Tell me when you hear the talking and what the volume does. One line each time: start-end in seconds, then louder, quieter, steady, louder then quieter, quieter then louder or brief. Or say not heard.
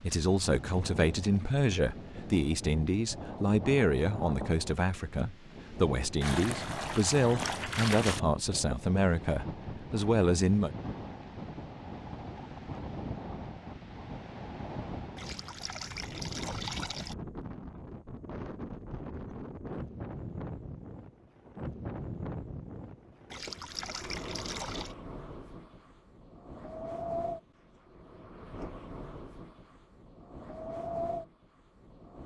0.0-10.7 steady.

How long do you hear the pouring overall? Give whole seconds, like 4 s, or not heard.
6 s.